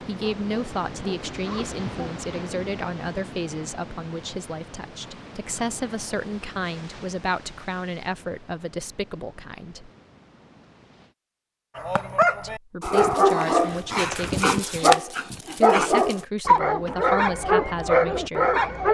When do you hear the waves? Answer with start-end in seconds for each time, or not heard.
0.0-11.2.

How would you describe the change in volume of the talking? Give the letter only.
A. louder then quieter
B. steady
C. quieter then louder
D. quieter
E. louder
B.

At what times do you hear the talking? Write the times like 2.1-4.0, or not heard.
0.0-9.9, 12.4-18.9.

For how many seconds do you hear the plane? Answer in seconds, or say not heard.
not heard.